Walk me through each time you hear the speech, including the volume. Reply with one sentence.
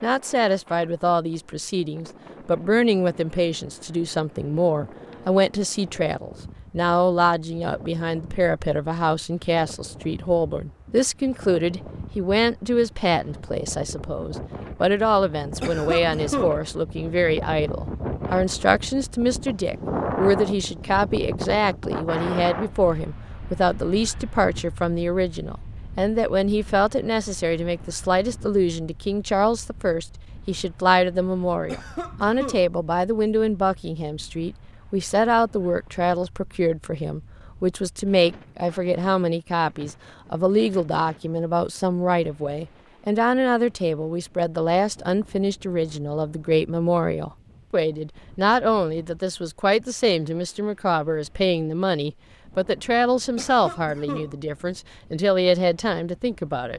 The speech can be heard from 0.0 to 56.7 s, at a steady volume.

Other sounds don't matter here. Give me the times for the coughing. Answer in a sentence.
You can hear the coughing from 15.6 to 16.6 s, from 31.6 to 32.6 s and from 53.4 to 54.4 s.